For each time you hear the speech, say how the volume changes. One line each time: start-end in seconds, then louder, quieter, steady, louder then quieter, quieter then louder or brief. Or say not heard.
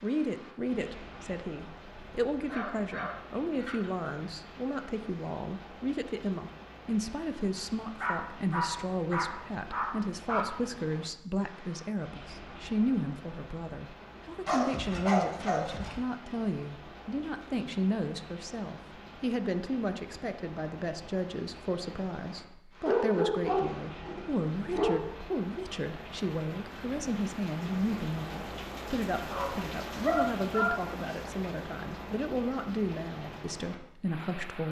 0.0-34.6 steady.